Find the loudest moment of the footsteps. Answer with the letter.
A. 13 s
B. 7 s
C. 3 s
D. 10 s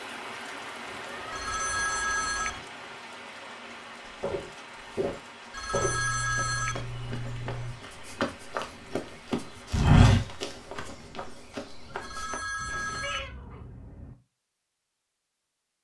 D.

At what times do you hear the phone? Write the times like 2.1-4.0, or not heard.
1.3-2.6, 5.5-6.8, 12.0-13.3.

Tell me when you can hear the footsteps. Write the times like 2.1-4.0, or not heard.
4.2-12.9.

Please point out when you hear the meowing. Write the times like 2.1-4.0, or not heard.
0.8-2.7, 5.7-7.8, 12.6-14.2.